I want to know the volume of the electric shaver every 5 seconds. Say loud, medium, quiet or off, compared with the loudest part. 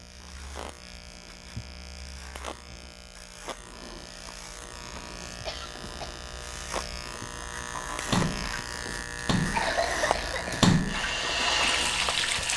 medium, loud, loud.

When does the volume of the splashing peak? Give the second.
11 s.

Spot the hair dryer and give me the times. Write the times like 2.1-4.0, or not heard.
10.8-12.5.